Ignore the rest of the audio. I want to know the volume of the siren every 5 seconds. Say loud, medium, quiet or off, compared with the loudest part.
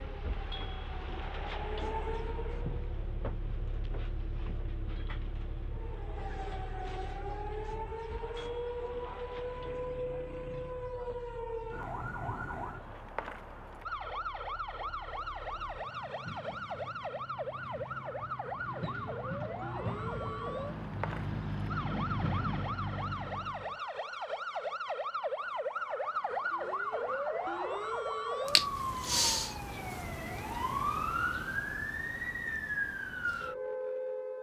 medium, medium, medium, medium, medium, loud, loud.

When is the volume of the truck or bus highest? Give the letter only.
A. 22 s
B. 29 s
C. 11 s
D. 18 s
A.